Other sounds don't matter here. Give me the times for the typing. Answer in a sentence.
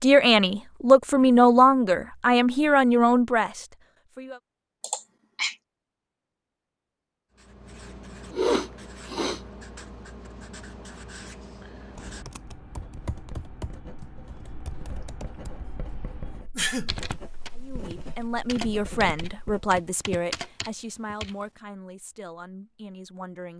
The typing can be heard from 11.9 to 21.4 s.